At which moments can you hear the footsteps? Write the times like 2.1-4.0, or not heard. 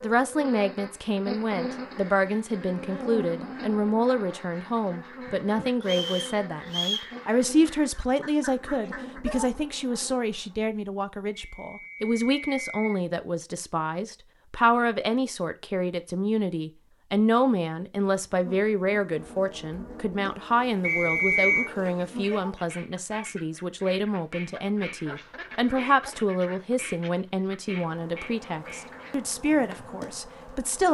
not heard.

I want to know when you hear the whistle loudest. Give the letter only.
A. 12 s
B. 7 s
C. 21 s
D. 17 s
C.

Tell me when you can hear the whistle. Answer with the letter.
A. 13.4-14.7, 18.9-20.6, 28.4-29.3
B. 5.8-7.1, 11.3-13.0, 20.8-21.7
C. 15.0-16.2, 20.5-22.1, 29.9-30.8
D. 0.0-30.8
B.